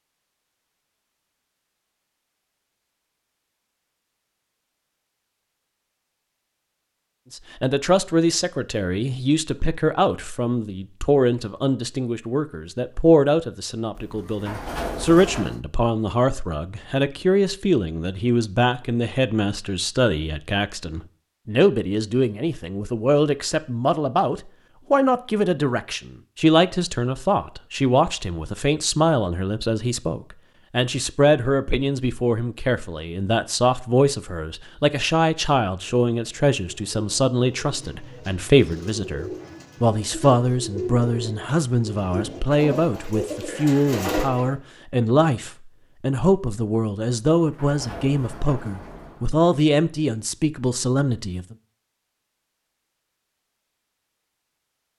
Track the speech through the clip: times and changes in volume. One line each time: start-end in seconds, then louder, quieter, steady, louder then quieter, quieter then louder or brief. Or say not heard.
7.3-51.5 steady.